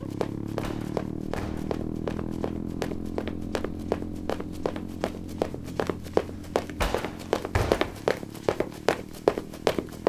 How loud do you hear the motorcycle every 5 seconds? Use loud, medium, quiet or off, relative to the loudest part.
loud, medium.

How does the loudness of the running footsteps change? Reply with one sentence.
The loudness of the running footsteps goes up.